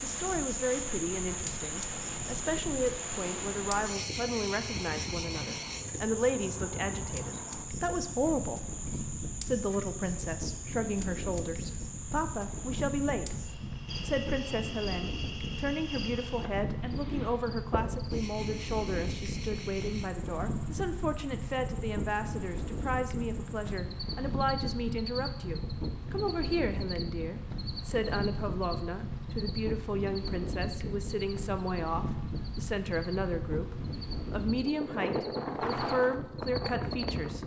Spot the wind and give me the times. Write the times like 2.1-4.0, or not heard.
0.0-37.4.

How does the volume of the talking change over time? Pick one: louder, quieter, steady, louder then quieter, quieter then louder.
steady.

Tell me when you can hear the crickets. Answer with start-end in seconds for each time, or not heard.
0.0-37.1.